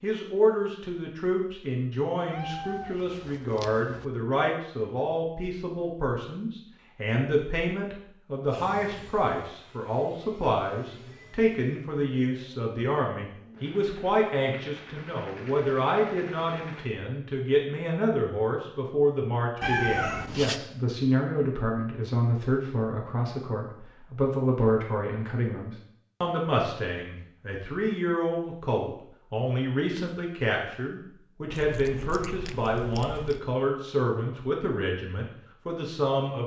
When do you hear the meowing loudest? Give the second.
20 s.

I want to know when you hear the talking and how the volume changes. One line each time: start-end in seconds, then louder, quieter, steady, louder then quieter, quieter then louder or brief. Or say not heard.
0.0-36.4 steady.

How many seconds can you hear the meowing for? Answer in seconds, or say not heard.
5 s.